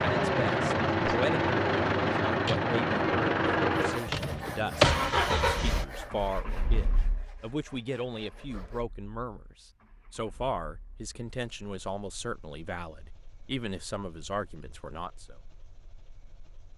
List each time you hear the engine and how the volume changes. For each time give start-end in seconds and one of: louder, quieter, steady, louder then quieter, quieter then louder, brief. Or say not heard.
0.0-16.7 quieter.